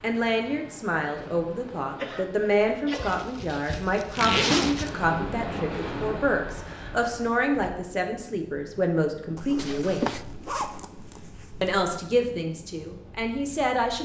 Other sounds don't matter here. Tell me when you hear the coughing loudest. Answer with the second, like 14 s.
10 s.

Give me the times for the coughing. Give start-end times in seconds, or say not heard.
1.2-3.1, 9.6-10.2.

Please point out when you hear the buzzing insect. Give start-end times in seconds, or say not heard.
not heard.